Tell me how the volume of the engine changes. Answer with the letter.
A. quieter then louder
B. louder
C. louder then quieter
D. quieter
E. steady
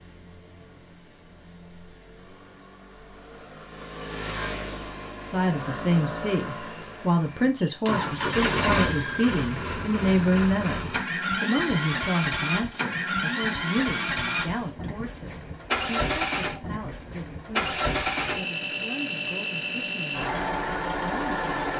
B.